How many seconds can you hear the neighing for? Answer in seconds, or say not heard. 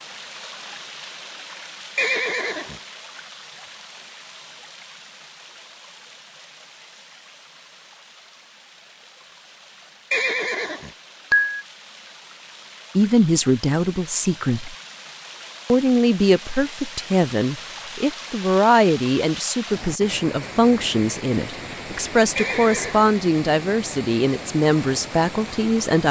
3 s.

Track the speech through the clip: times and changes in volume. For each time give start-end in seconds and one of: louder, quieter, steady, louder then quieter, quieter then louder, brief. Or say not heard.
12.9-14.8 brief
15.7-26.0 steady.